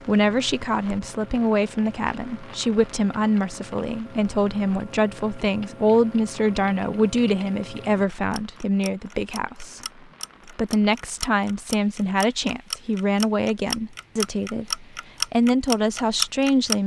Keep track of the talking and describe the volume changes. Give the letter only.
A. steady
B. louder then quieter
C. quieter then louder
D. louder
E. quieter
A.